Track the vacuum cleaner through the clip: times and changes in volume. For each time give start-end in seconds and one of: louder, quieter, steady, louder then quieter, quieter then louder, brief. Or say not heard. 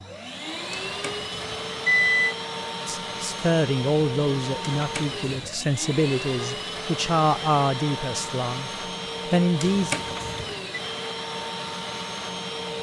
0.0-12.7 steady.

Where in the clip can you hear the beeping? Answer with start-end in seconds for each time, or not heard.
0.7-2.4, 4.8-5.5, 9.6-10.6.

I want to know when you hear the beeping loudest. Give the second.
2 s.